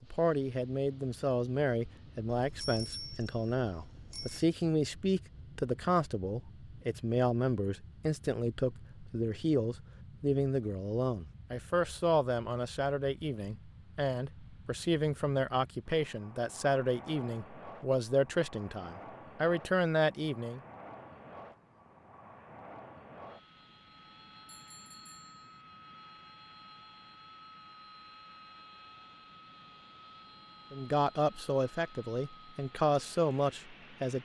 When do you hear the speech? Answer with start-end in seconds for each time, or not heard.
0.0-20.6, 30.7-34.2.